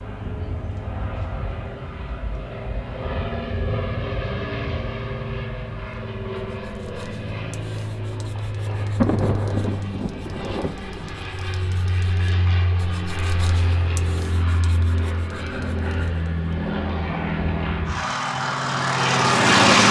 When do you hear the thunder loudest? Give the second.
9 s.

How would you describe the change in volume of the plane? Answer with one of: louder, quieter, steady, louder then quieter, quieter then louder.
louder.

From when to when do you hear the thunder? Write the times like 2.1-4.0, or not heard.
8.1-11.1.